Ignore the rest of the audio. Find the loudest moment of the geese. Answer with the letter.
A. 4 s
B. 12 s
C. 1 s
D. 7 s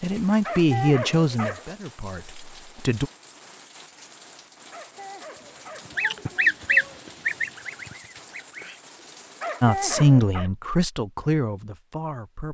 D.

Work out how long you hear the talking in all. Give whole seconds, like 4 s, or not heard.
6 s.